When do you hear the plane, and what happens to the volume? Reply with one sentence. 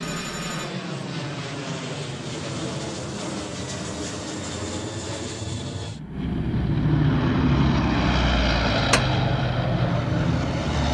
You can hear the plane from 0.0 to 10.8 s, getting louder.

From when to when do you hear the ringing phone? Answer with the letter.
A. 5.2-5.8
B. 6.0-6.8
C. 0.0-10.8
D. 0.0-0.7
D.